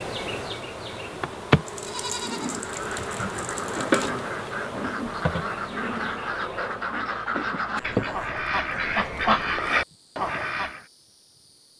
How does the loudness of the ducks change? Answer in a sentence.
The loudness of the ducks goes up.